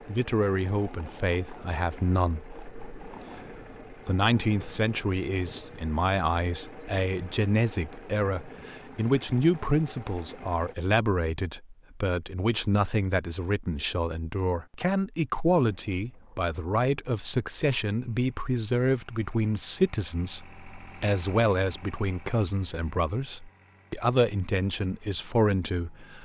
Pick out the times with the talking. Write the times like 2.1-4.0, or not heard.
0.1-26.2.